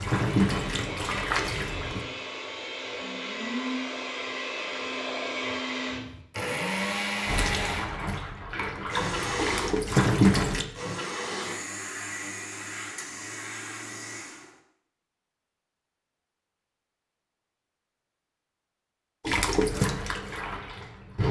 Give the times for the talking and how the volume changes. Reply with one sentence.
You can't hear the talking here.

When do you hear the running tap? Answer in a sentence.
You can hear the running tap from 0.0 to 2.0 s, from 7.2 to 10.7 s and from 19.2 to 21.2 s.